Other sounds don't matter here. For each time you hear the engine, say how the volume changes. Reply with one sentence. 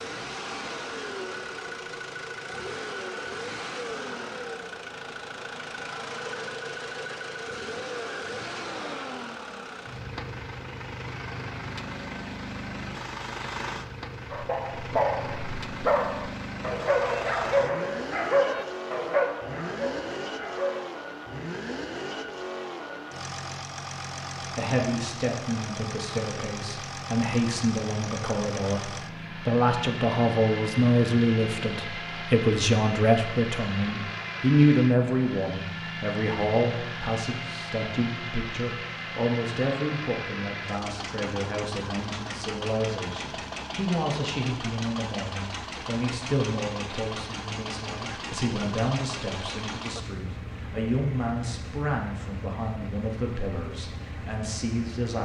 You can hear the engine from 0.0 to 55.2 s, at a steady volume.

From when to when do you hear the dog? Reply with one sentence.
You can hear the dog from 14.3 to 20.9 s.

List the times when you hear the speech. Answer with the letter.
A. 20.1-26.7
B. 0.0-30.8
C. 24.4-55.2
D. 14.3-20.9
C.